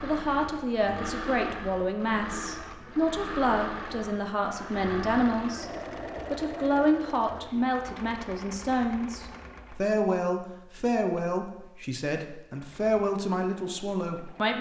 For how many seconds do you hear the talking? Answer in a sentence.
The talking can be heard for 14 seconds in total.